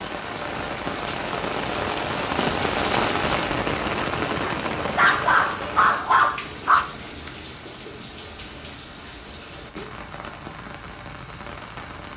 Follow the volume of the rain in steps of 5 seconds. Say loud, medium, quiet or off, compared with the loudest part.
loud, medium, quiet.